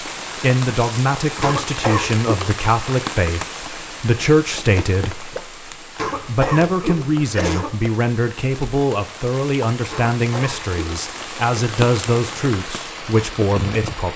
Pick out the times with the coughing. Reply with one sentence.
The coughing can be heard from 1.4 to 2.4 s, from 6.0 to 7.8 s and from 9.9 to 11.1 s.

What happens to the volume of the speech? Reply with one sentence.
The loudness of the speech stays about the same.